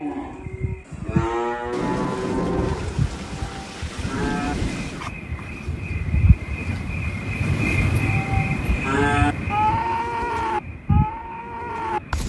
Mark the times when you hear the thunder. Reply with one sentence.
You can hear the thunder from 1.7 to 5.1 s.